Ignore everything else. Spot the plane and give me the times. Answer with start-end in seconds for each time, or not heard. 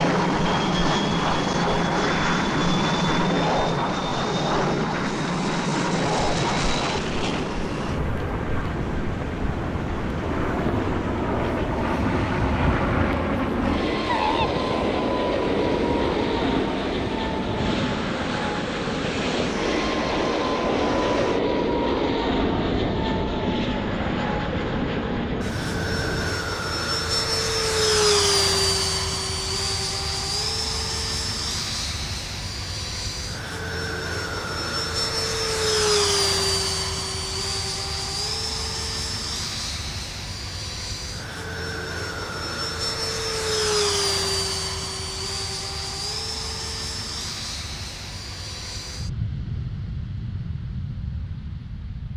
0.0-52.1.